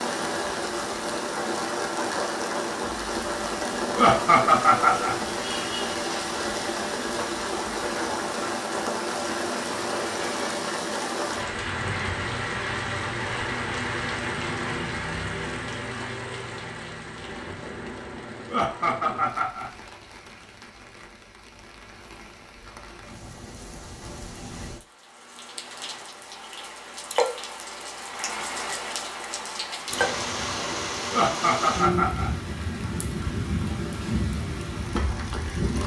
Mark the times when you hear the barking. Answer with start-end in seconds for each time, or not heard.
not heard.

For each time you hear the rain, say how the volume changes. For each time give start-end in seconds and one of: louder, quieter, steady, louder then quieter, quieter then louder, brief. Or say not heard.
0.0-35.8 quieter then louder.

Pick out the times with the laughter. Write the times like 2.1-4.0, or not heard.
4.0-5.2, 18.5-19.7, 31.1-32.3.